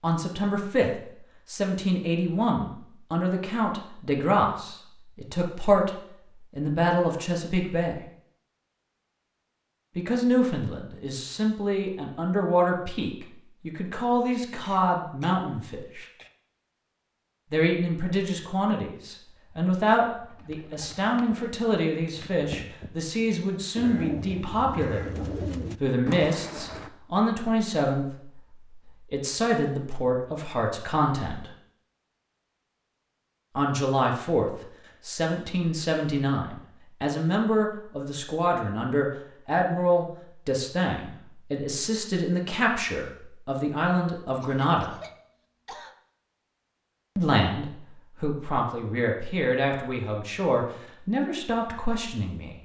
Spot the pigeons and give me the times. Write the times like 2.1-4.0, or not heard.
20.1-26.9.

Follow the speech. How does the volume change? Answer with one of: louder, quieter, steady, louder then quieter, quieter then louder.
steady.